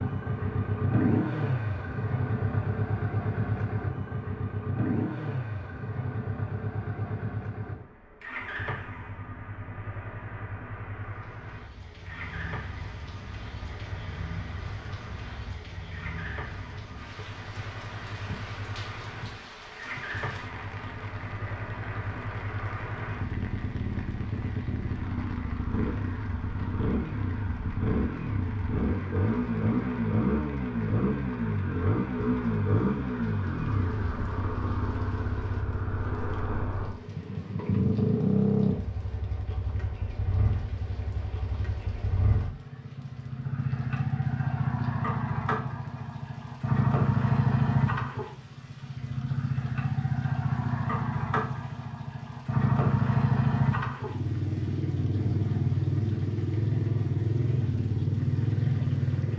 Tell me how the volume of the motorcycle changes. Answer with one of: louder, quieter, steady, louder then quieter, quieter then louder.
quieter then louder.